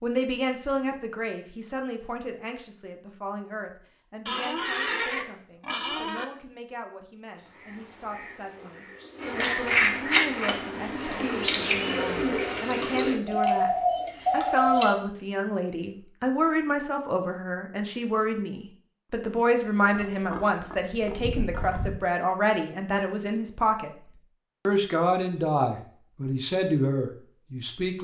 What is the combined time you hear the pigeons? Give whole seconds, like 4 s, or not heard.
8 s.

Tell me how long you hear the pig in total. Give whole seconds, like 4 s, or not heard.
4 s.